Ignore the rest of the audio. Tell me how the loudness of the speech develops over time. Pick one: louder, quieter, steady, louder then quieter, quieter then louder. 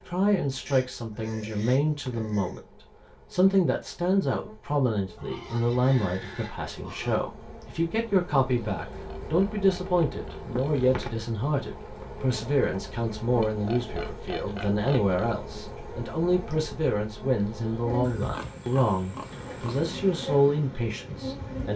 steady.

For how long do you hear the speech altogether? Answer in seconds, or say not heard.
22 s.